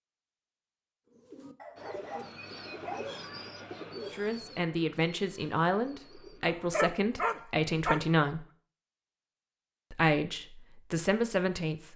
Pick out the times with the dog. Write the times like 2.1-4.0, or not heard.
1.6-3.1, 6.5-8.1.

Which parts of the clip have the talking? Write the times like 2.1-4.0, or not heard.
4.1-8.4, 9.9-11.9.